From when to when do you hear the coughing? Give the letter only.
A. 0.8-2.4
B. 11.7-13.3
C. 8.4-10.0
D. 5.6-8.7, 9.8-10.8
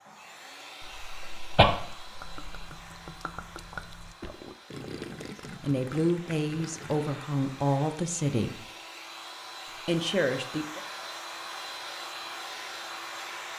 A.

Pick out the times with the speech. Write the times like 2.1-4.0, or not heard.
5.6-8.7, 9.8-10.8.